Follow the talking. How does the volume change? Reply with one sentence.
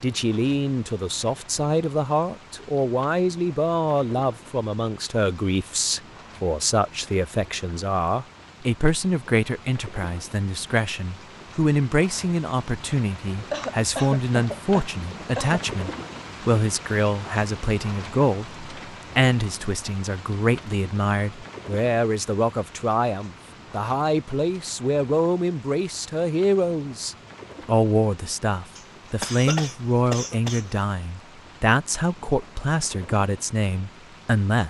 The volume of the talking stays about the same.